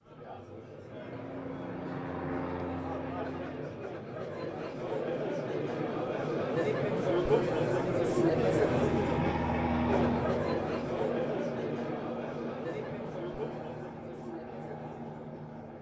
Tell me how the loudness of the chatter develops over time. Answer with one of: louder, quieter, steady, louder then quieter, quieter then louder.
louder then quieter.